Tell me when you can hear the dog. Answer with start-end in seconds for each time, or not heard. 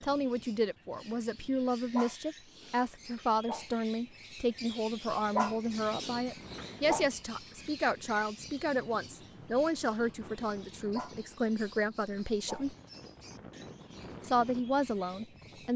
1.9-3.6, 5.3-7.0, 10.9-12.7.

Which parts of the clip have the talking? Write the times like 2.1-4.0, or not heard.
0.0-12.8, 14.2-15.7.